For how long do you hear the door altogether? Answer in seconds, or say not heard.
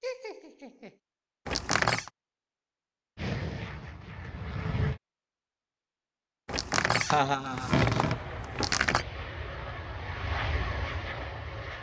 3 s.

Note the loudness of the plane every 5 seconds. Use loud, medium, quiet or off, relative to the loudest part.
loud, medium, loud.